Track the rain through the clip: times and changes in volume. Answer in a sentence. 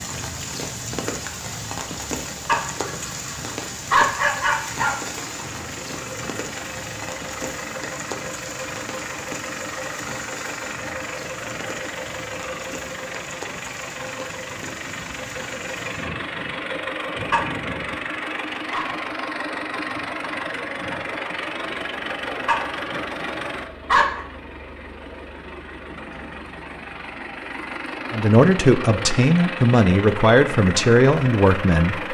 The rain can be heard from 0.0 to 16.8 s, getting quieter.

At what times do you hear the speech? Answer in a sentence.
You can hear the speech from 28.1 to 32.0 s.